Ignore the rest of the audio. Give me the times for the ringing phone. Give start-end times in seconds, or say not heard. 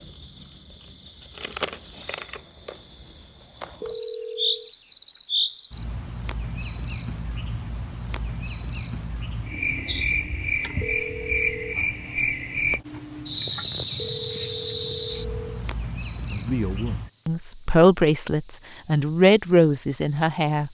3.8-4.7, 10.8-11.8, 13.9-15.7.